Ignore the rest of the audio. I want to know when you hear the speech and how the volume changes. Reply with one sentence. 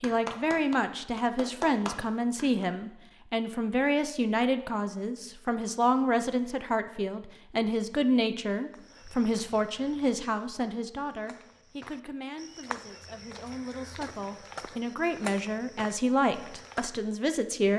The speech can be heard from 0.0 to 17.7 s, getting quieter then louder.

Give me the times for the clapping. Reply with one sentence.
The clapping can be heard from 0.0 to 2.6 s.